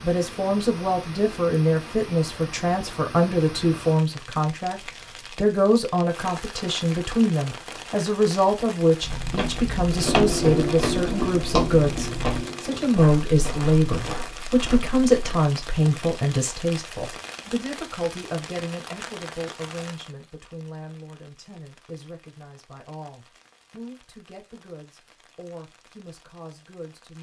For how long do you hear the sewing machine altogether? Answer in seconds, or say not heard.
3 s.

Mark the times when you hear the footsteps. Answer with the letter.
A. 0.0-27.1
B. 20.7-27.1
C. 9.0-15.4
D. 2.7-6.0
C.